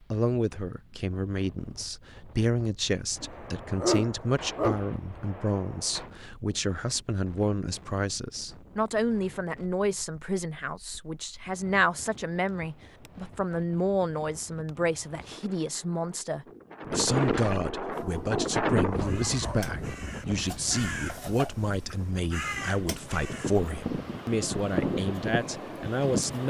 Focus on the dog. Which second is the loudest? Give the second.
4 s.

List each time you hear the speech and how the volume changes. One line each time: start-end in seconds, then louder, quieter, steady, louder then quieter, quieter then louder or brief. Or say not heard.
0.1-26.4 steady.